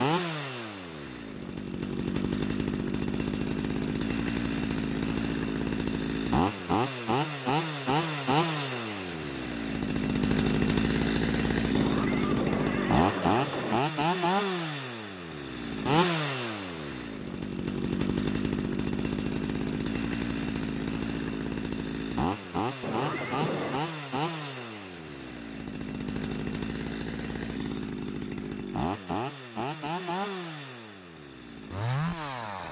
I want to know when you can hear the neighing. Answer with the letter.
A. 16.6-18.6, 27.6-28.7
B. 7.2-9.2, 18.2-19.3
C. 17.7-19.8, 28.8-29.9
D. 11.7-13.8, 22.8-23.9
D.